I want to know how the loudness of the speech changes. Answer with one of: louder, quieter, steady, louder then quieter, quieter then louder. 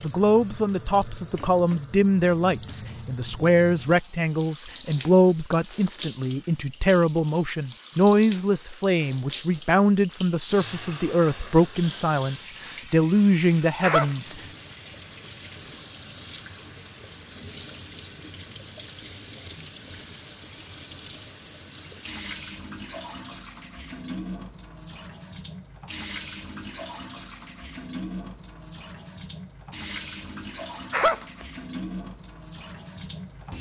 steady.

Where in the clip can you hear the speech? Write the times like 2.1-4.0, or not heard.
0.0-14.4.